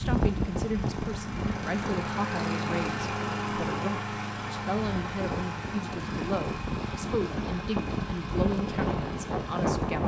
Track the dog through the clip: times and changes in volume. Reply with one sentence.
You can't hear the dog here.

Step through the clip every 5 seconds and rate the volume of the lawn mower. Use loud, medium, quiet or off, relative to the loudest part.
loud, medium.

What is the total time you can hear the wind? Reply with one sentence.
You can hear the wind for 10 seconds altogether.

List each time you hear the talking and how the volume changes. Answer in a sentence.
You can hear the talking from 0.0 to 10.0 s, at a steady volume.